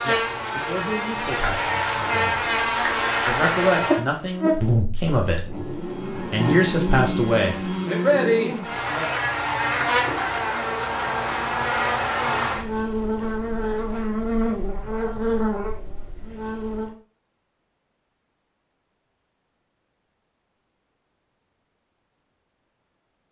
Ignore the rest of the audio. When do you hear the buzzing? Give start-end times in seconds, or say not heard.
0.0-16.9.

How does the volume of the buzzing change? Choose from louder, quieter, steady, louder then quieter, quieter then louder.
steady.